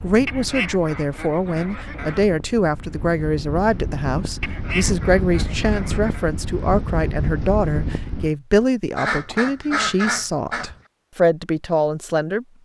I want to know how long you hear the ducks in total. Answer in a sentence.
The ducks can be heard for 6 seconds in total.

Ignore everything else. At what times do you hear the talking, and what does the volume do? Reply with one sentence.
The talking can be heard from 0.0 to 12.4 s, at a steady volume.